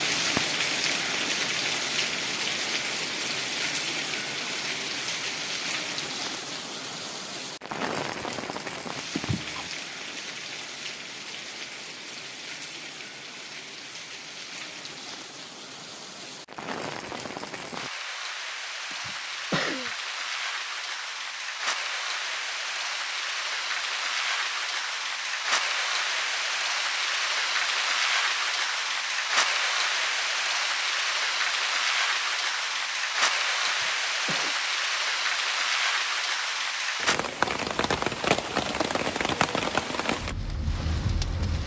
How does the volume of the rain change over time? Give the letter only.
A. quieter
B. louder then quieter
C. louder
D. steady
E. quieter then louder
E.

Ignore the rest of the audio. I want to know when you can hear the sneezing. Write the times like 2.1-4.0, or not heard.
9.1-9.7, 18.9-19.9, 33.6-34.5.